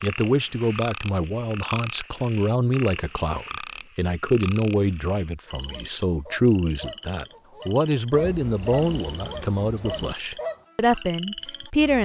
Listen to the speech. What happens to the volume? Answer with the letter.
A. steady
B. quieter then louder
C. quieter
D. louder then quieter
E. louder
A.